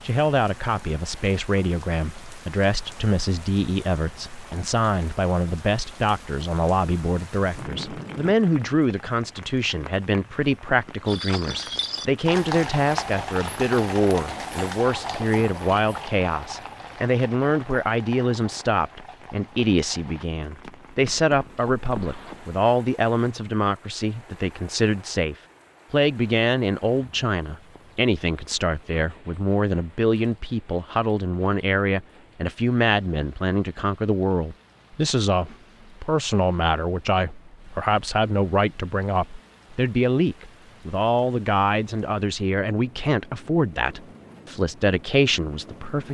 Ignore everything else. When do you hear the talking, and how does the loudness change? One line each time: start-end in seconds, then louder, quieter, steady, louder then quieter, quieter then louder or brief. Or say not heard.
0.0-46.0 steady.